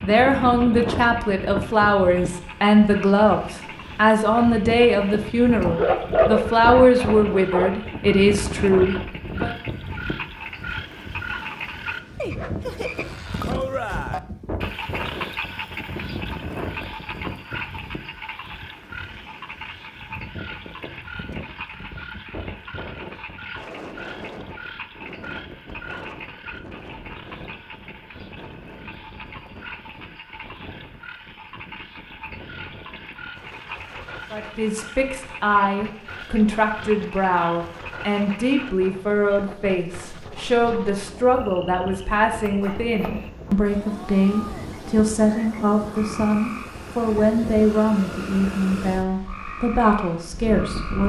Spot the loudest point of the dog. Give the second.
6 s.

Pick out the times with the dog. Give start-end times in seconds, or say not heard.
5.6-7.8.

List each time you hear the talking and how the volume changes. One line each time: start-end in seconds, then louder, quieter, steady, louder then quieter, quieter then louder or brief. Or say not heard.
0.0-9.5 steady
34.3-51.0 steady.